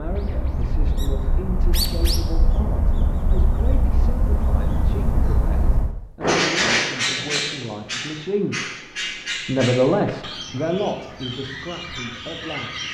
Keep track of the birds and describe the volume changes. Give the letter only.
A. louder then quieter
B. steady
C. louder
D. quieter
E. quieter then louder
A.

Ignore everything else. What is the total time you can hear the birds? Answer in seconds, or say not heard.
13 s.